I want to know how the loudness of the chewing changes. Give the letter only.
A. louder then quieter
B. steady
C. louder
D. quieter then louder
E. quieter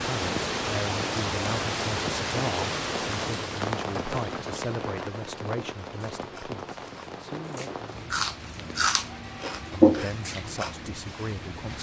A.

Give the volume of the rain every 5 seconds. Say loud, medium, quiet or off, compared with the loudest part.
loud, medium, medium.